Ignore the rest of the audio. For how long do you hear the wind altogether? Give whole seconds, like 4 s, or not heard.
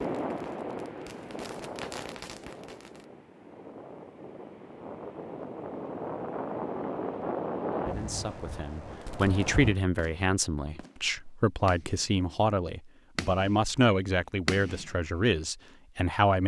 10 s.